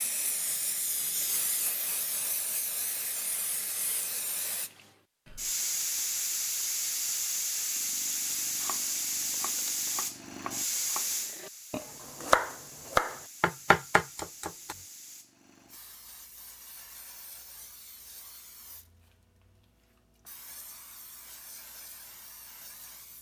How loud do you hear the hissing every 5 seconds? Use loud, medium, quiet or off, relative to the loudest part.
medium, loud, medium, quiet, quiet.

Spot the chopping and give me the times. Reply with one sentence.
You can hear the chopping from 8.3 to 14.8 s.